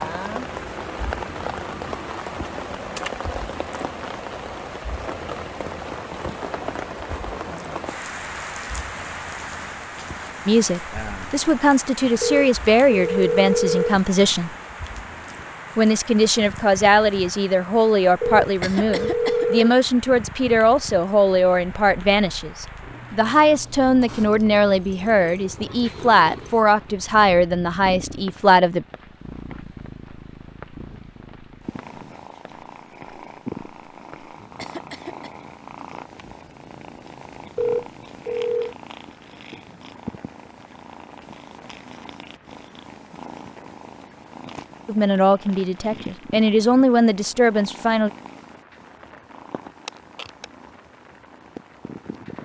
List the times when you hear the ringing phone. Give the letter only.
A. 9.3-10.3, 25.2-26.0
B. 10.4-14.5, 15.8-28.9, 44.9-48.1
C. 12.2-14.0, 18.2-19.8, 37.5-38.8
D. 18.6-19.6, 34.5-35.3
C.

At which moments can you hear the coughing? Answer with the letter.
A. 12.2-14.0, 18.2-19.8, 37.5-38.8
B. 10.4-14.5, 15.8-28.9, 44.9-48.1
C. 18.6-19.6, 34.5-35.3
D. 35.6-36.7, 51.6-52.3
C.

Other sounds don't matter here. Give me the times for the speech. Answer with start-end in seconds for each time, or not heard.
10.4-14.5, 15.8-28.9, 44.9-48.1.